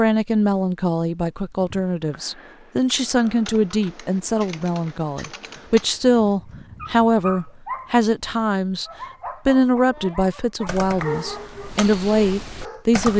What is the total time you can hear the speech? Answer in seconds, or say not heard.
13 s.